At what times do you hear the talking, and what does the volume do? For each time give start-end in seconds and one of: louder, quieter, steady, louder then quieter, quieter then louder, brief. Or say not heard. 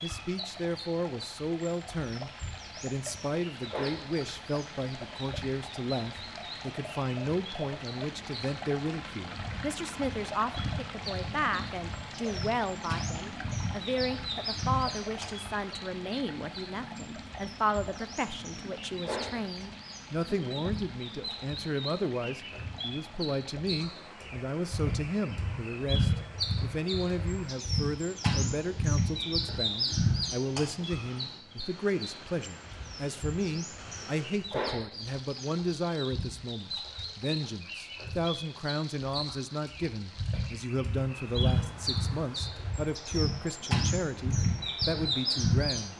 0.0-45.9 steady.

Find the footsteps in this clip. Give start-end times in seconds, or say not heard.
not heard.